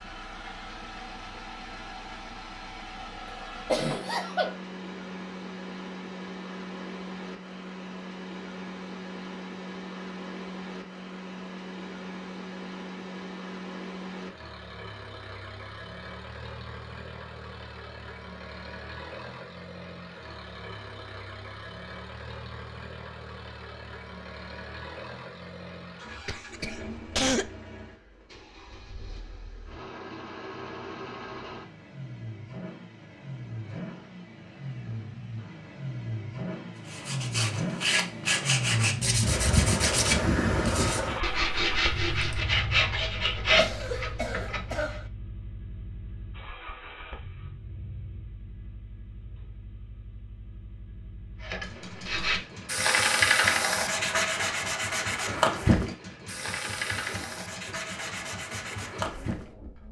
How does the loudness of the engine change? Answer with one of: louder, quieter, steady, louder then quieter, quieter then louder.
louder then quieter.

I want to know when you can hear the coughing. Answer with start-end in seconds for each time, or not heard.
3.7-4.5, 26.2-27.4, 43.5-45.0.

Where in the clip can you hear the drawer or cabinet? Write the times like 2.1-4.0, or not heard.
not heard.